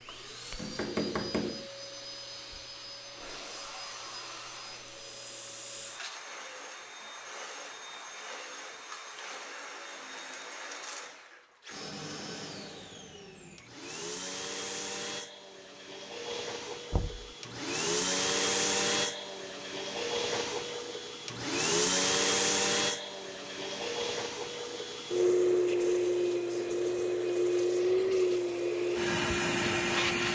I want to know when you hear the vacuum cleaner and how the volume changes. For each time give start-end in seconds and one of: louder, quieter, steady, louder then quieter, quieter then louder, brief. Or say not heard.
0.0-30.3 louder.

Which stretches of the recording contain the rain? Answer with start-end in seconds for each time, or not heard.
not heard.